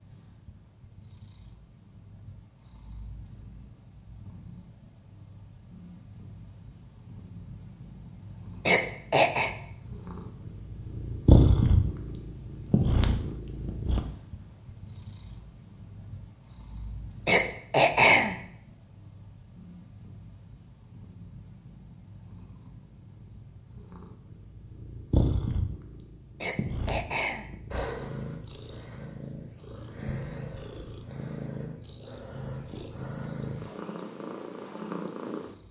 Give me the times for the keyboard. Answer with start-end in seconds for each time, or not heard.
not heard.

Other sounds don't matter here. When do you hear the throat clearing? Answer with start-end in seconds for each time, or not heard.
8.7-9.6, 17.2-18.4, 26.4-27.5.